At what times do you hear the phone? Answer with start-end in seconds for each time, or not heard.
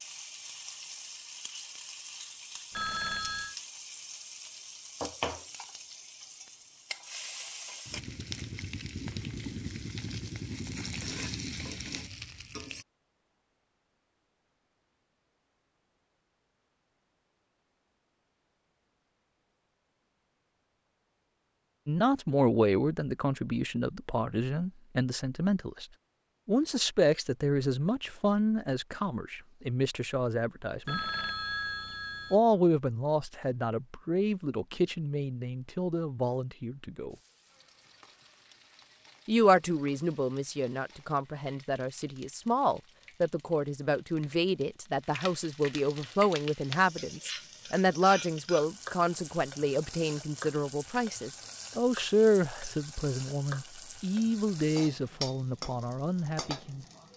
2.7-3.5, 30.9-32.4.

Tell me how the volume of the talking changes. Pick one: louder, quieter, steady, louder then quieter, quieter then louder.
steady.